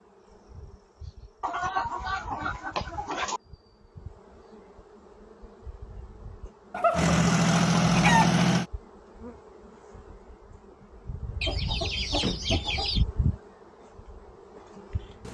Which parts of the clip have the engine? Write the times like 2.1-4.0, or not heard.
6.9-8.7.